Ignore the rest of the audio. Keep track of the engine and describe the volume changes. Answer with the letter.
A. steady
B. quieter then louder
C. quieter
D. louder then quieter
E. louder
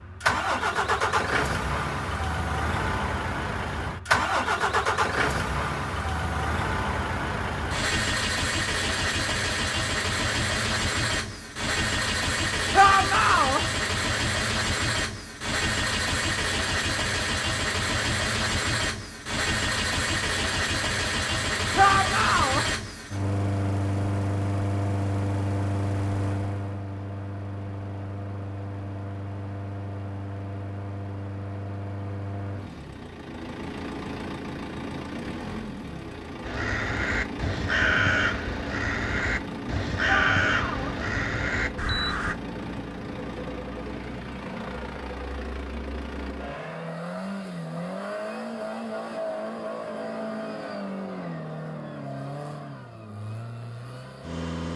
C.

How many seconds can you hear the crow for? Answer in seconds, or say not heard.
6 s.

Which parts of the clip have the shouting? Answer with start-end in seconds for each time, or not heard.
12.7-13.6, 21.8-22.6, 40.0-41.0.